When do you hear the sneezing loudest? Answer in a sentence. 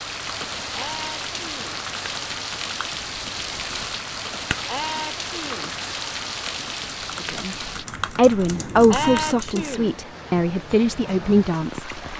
The volume of the sneezing peaks at 9 seconds.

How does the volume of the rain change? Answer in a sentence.
The volume of the rain goes down.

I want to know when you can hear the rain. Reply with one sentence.
You can hear the rain from 0.0 to 12.1 s.